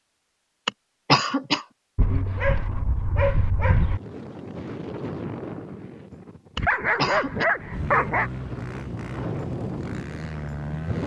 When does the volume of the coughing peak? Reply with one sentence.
The volume of the coughing peaks at 1 second.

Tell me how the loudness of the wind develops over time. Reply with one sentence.
The volume of the wind goes down, then up.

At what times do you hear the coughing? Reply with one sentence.
The coughing can be heard from 0.7 to 1.6 s and from 6.5 to 7.5 s.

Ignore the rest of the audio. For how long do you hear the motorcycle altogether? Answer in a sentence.
The motorcycle can be heard for 3 seconds in total.